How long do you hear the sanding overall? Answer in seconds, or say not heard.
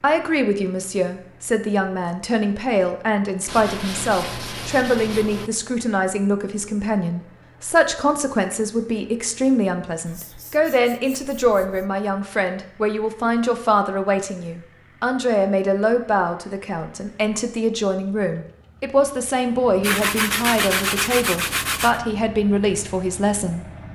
6 s.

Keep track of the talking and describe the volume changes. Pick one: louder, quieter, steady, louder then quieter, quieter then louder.
steady.